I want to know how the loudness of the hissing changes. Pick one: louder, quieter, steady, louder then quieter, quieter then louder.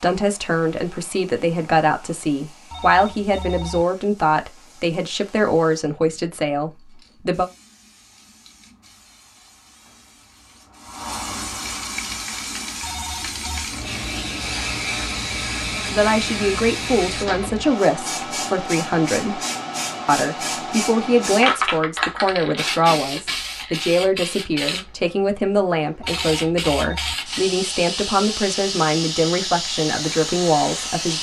louder.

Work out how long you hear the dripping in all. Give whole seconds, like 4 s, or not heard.
not heard.